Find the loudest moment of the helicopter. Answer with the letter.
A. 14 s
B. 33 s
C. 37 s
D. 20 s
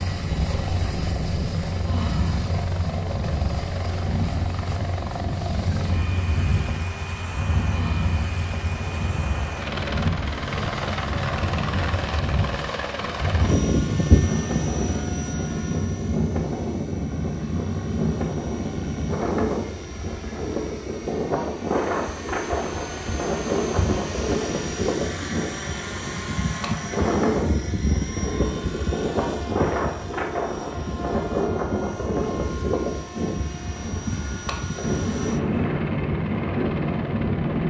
A.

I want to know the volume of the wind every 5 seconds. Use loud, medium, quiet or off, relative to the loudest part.
medium, medium, loud, loud, loud, loud, loud, loud.